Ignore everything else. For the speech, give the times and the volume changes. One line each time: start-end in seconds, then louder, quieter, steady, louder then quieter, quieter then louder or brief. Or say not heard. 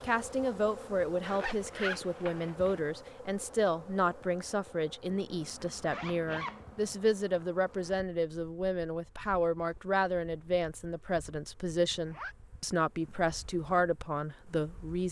0.0-15.0 steady.